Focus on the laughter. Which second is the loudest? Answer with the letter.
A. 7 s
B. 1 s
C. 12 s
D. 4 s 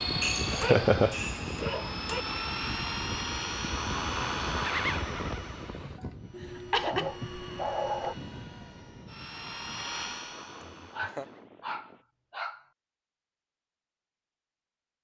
B.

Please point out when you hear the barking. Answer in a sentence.
You can hear the barking from 0.2 to 2.2 s, from 6.3 to 8.2 s and from 10.9 to 12.7 s.